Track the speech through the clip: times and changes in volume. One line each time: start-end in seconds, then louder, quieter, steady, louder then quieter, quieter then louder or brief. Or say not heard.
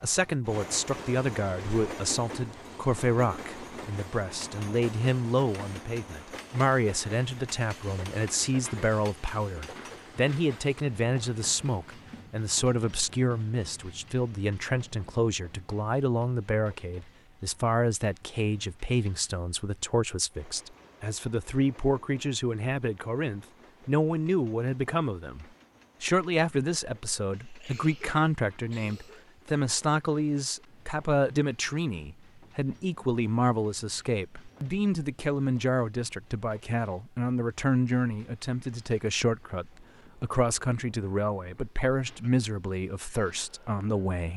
0.0-44.3 steady.